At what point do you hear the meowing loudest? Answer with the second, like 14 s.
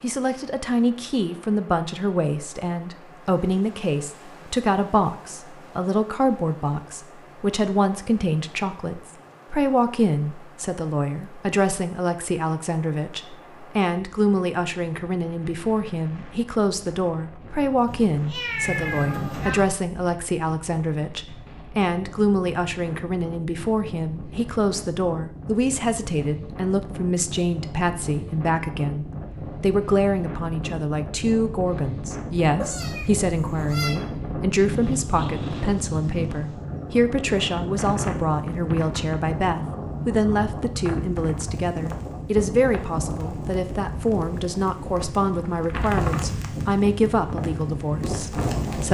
19 s.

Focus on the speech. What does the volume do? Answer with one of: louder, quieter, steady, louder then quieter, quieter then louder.
steady.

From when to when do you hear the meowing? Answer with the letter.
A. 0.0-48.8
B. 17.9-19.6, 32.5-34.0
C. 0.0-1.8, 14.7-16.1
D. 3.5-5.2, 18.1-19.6
B.